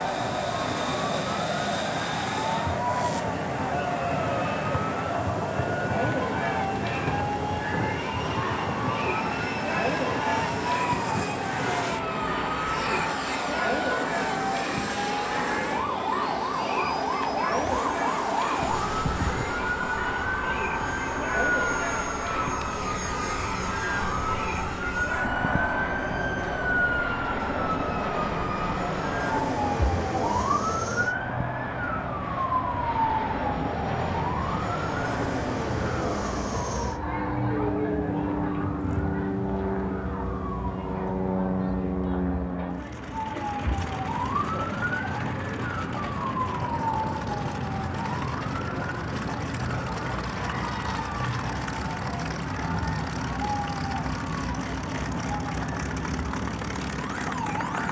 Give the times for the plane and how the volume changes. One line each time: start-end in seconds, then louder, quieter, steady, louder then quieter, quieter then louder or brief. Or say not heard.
0.0-57.8 steady.